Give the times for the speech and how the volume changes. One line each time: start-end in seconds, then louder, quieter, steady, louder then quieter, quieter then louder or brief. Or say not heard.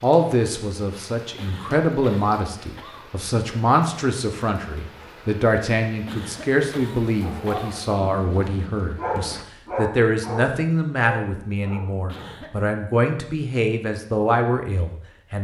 0.0-15.3 steady.